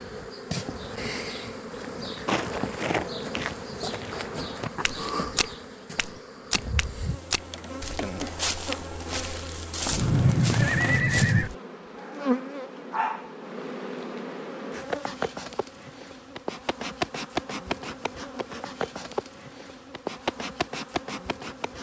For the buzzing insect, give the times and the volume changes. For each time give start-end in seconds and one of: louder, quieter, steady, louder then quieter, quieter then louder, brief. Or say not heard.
0.0-21.7 steady.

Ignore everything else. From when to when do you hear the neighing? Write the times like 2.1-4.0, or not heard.
9.9-11.5.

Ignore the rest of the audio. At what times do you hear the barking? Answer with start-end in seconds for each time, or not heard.
11.9-13.3.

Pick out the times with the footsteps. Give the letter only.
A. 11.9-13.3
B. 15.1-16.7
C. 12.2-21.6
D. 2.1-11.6
D.